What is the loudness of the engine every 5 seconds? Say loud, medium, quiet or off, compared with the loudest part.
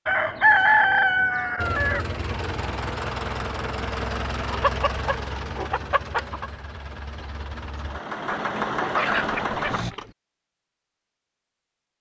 loud, loud, off.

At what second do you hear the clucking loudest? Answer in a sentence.
The loudest moment of the clucking is at 1 second.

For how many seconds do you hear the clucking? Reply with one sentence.
The clucking can be heard for 6 seconds in total.